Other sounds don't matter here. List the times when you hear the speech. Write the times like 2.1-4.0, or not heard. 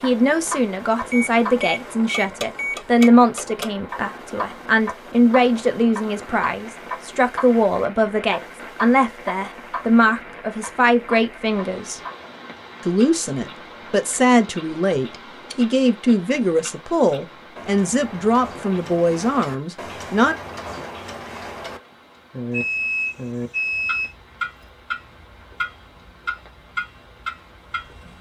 0.0-12.0, 12.8-20.4.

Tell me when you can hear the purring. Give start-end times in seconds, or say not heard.
not heard.